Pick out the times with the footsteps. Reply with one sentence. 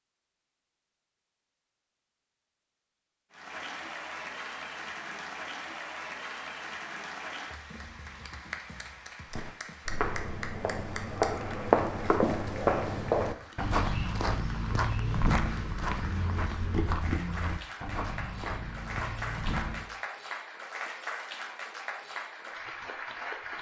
You can hear the footsteps from 9.3 to 19.9 s.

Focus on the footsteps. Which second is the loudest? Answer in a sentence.
The loudest moment of the footsteps is at 12 seconds.